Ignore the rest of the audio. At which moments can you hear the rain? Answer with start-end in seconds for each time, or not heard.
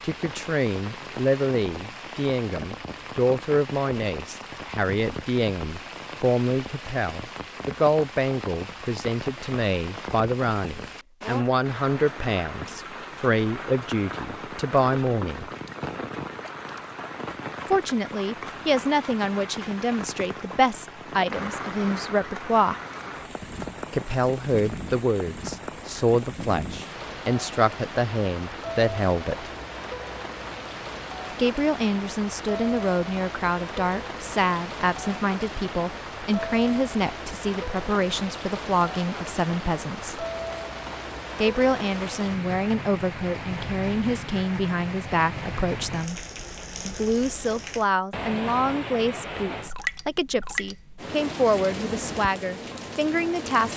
0.0-53.7.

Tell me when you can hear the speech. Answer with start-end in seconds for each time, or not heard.
0.0-15.5, 17.6-22.8, 23.9-29.5, 31.4-40.2, 41.4-46.2, 46.9-53.7.